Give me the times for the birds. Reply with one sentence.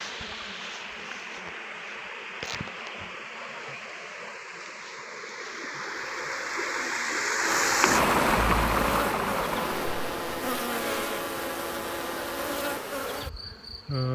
You can't hear the birds here.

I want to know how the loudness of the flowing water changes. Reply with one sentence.
The volume of the flowing water goes up.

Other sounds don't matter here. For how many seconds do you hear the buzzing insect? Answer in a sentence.
You can hear the buzzing insect for 14 seconds altogether.